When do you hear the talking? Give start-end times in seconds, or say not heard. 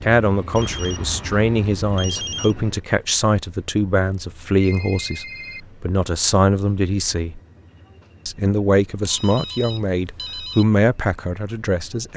0.0-7.4, 8.2-12.1.